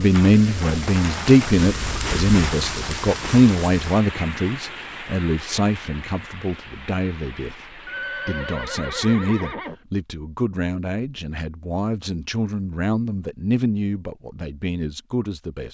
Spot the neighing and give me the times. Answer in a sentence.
You can hear the neighing from 7.8 to 9.8 s.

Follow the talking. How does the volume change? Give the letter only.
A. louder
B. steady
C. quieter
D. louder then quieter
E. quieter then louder
C.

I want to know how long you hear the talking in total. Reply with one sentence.
The talking can be heard for 15 seconds in total.